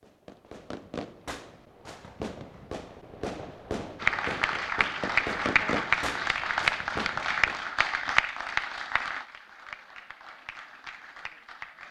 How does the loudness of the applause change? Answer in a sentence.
The volume of the applause goes down.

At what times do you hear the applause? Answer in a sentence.
The applause can be heard from 4.0 to 11.8 s.